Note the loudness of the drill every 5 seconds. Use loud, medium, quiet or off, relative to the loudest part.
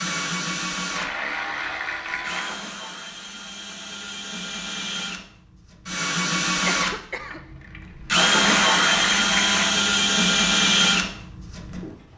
medium, loud, loud.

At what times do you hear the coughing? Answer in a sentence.
You can hear the coughing from 6.7 to 7.5 s.